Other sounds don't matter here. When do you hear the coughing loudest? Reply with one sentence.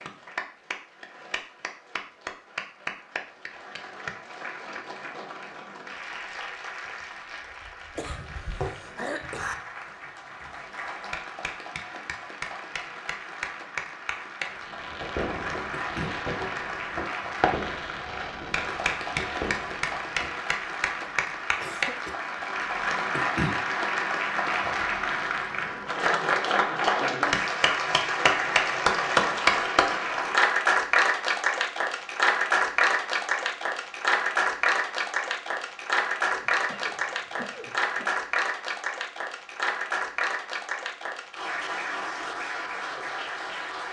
The loudest moment of the coughing is at 9 seconds.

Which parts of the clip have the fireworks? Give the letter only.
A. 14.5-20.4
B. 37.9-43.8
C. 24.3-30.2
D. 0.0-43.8
A.